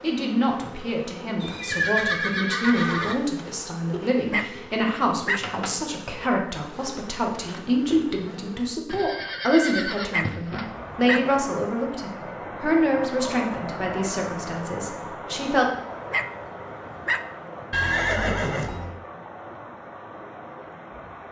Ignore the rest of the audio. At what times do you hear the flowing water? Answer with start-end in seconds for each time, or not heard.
10.4-21.2.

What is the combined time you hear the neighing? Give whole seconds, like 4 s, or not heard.
5 s.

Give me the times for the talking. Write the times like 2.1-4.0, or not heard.
0.0-15.7.